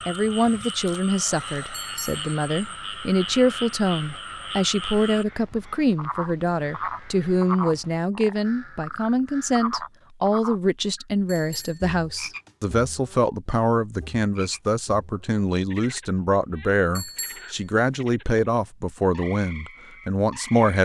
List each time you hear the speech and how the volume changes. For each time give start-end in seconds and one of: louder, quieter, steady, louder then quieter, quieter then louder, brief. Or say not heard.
0.1-20.8 steady.